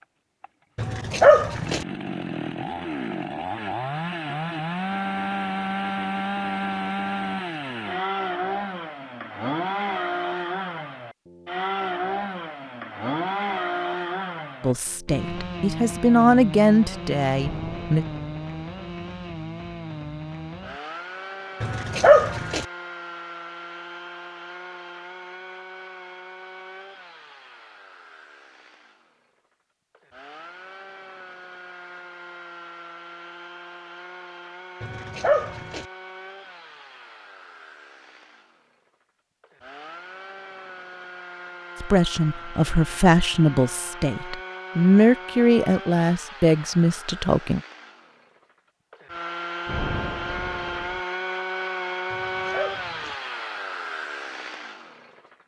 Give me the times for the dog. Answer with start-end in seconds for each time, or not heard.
0.8-1.9, 21.6-22.6, 34.8-35.9, 52.1-53.1.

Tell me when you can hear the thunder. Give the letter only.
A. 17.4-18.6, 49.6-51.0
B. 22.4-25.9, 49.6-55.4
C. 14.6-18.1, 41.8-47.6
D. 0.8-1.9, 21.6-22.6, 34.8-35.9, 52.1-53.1
A.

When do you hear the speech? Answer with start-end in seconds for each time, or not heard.
14.6-18.1, 41.8-47.6.